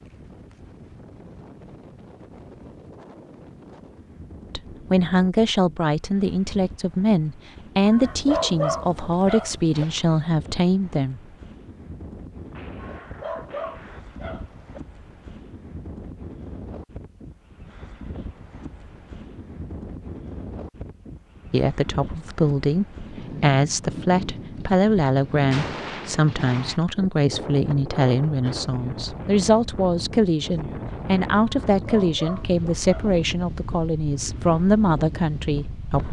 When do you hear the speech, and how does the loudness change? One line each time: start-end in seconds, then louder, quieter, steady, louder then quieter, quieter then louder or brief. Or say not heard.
4.5-11.3 steady
21.5-36.0 steady.